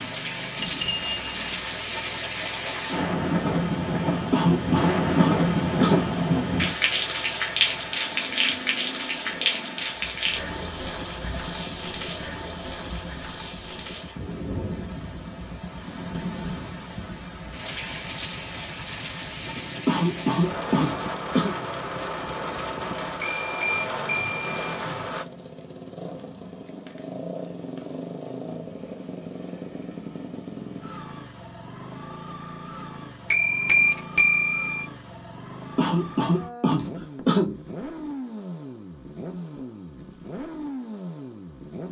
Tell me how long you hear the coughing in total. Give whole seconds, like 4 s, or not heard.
5 s.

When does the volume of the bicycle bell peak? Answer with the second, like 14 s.
34 s.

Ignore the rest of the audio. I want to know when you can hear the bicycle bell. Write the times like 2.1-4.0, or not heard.
0.6-1.6, 23.2-24.5, 33.3-34.8.